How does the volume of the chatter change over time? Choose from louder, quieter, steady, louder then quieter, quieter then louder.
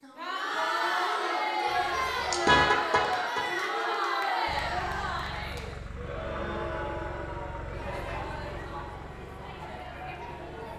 quieter.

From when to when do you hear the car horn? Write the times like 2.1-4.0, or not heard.
1.6-3.5.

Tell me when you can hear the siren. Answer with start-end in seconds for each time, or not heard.
not heard.